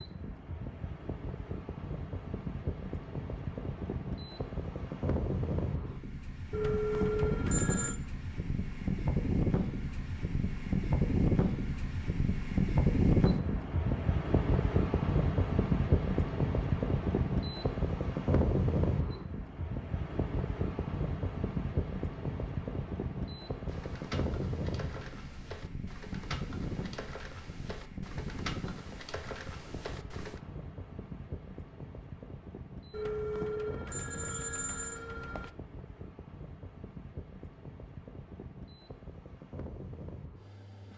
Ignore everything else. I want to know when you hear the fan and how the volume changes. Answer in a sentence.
You can hear the fan from 0.0 to 40.9 s, getting louder then quieter.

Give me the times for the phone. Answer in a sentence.
The phone can be heard from 6.5 to 8.0 s and from 32.9 to 35.5 s.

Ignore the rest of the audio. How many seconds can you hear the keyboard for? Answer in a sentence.
The keyboard can be heard for 7 seconds in total.